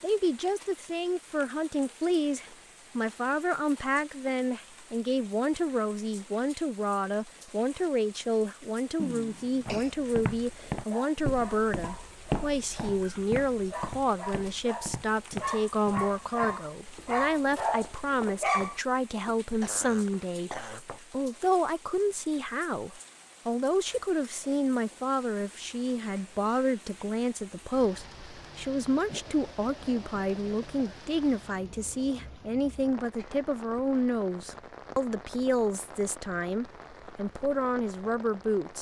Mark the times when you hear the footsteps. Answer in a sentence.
The footsteps can be heard from 9.7 to 21.0 s.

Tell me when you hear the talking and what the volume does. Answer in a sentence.
You can hear the talking from 0.0 to 38.7 s, at a steady volume.